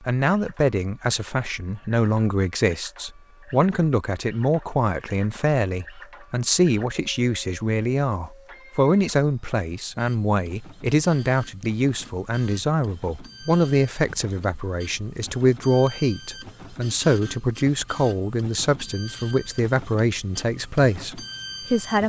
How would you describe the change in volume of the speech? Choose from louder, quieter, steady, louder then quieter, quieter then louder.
steady.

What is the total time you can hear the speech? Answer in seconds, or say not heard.
22 s.